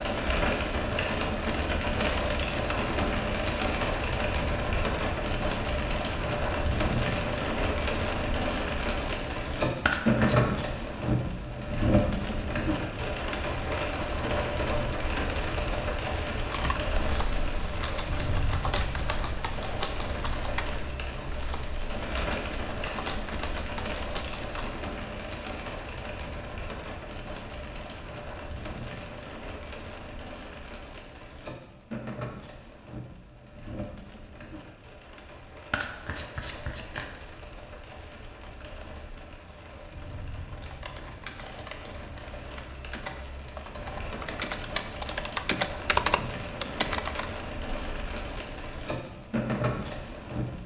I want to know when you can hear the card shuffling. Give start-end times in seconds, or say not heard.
9.8-10.6, 35.7-37.0.